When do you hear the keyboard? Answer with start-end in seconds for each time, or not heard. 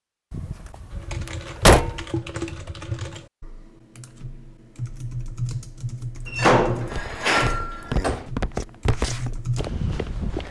0.9-9.7.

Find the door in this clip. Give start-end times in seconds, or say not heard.
0.3-2.0, 6.2-8.2.